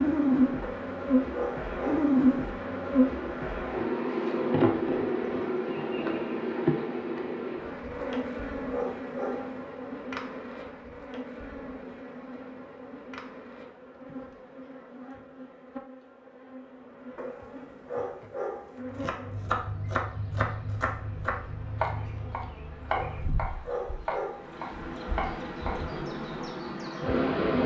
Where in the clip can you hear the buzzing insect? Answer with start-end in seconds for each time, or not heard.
0.0-27.6.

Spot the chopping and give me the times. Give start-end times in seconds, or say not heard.
18.9-26.4.